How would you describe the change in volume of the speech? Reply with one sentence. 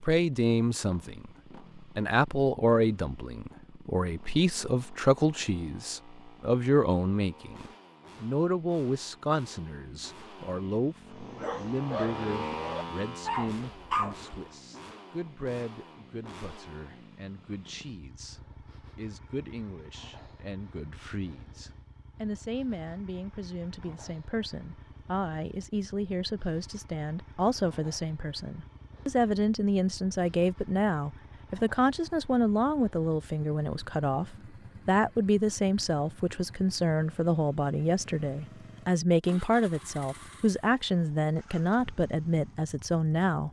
The volume of the speech goes down, then up.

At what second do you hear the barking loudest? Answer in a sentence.
The loudest moment of the barking is at 14 seconds.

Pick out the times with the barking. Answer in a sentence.
The barking can be heard from 11.2 to 14.4 s.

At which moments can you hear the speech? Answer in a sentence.
The speech can be heard from 0.0 to 43.4 s.